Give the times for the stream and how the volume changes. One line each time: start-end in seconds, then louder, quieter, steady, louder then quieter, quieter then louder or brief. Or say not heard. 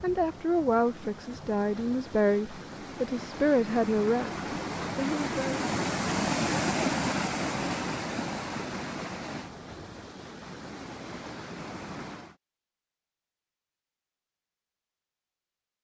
0.0-12.3 louder then quieter.